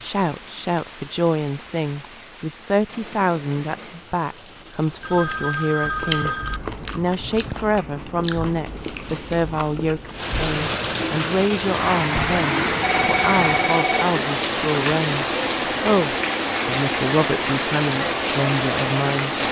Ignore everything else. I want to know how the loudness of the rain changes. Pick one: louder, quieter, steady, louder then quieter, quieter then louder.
louder.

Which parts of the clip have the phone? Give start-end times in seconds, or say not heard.
5.0-6.6, 12.2-14.2.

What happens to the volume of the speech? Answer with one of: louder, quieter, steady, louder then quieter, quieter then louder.
steady.